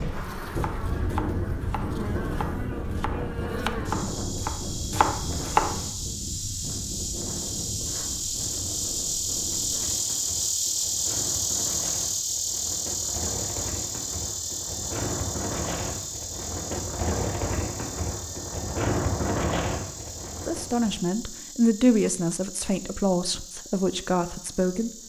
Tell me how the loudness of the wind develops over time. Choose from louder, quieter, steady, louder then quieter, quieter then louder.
quieter then louder.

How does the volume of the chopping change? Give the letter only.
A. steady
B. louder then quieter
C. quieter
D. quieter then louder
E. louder
D.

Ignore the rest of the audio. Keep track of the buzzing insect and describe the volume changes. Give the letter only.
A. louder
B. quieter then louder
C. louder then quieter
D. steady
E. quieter
C.